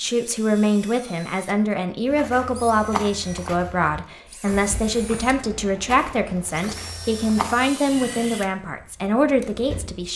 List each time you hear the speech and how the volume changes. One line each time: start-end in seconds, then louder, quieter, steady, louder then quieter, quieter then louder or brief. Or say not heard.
0.0-10.1 steady.